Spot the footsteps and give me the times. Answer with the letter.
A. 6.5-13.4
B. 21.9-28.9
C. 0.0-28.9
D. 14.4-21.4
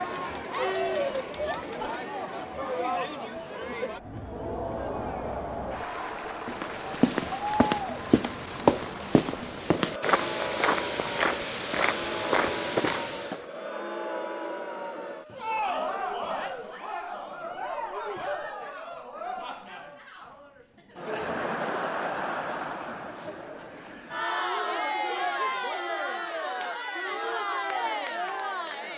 A.